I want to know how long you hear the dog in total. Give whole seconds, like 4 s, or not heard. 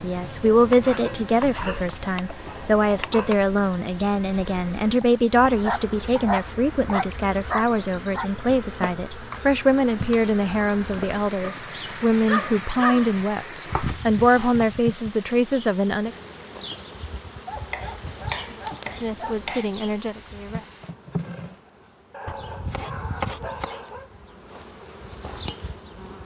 11 s.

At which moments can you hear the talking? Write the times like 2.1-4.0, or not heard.
0.0-16.1, 19.0-20.6.